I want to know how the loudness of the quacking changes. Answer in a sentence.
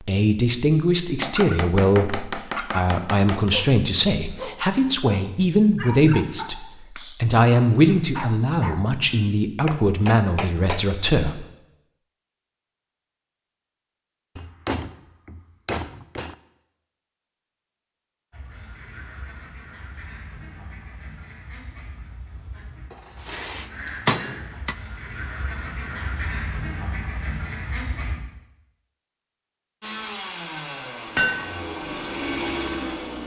The loudness of the quacking goes up.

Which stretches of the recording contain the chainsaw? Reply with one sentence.
You can hear the chainsaw from 29.8 to 33.2 s.